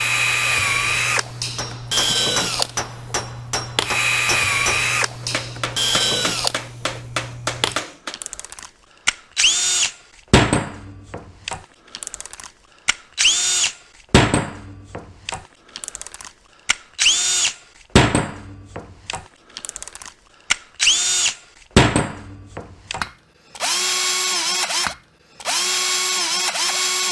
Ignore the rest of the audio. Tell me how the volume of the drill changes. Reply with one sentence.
The loudness of the drill stays about the same.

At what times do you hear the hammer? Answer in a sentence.
The hammer can be heard from 1.6 to 8.2 s.